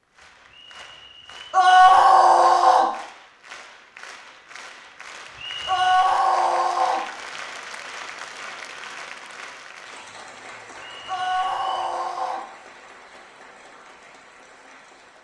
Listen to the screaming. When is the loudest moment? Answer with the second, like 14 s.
2 s.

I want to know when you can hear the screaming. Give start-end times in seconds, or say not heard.
1.5-2.9, 5.7-7.0, 11.1-12.4.